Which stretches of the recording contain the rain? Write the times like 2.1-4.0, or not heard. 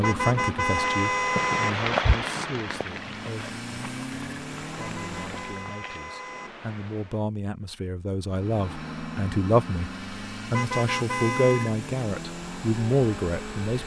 0.0-7.2.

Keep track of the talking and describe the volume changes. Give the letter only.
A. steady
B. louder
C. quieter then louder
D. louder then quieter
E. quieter
C.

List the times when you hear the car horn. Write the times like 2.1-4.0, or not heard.
0.0-1.7, 4.8-6.5, 10.5-11.8.